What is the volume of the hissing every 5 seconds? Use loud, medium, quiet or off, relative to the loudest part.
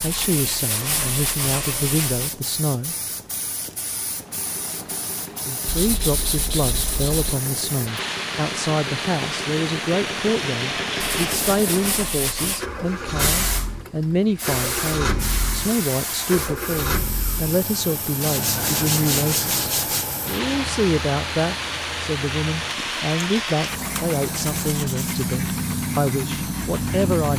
medium, medium, loud, medium, loud, loud.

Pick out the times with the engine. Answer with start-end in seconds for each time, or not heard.
4.0-27.3.